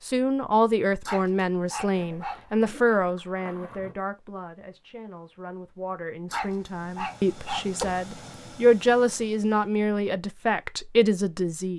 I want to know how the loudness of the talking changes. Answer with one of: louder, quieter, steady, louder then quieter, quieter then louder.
quieter then louder.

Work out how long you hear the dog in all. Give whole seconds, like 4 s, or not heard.
3 s.